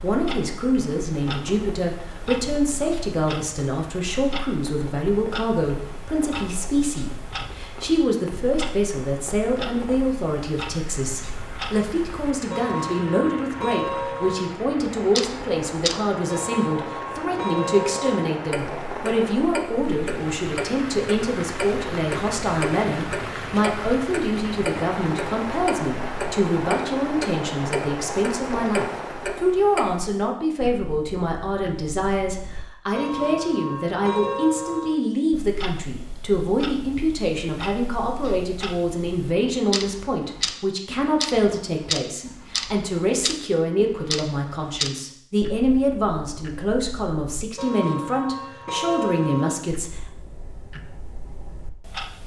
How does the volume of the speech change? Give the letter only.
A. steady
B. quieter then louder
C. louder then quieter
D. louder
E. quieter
A.